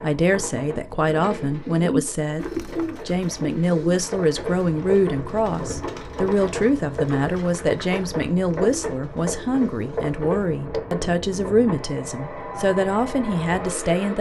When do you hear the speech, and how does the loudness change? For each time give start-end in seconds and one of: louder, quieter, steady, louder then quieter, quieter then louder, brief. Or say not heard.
0.0-14.1 steady.